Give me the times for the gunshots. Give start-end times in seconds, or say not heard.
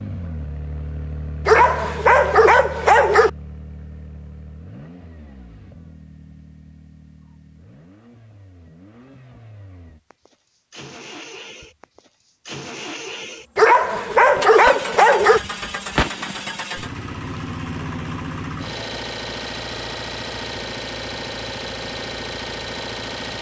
14.7-16.6.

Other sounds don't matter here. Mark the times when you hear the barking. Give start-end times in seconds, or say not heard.
1.4-3.3, 13.6-15.4.